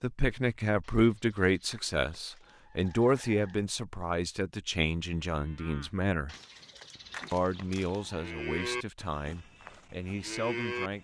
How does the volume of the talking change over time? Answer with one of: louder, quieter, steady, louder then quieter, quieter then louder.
quieter.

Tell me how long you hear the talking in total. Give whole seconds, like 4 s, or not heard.
10 s.